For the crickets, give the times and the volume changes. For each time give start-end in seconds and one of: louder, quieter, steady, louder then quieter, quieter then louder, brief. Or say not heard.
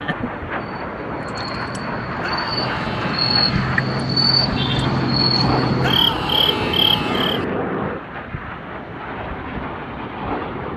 0.0-7.4 louder.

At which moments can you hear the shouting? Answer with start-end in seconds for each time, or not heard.
2.2-3.7, 5.8-7.5.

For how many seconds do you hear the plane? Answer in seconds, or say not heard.
11 s.